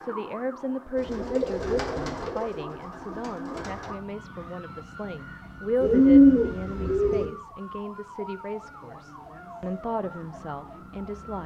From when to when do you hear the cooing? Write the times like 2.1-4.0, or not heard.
0.9-3.9, 5.8-7.3.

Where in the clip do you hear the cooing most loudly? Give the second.
6 s.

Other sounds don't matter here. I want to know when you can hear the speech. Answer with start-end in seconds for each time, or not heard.
0.0-11.4.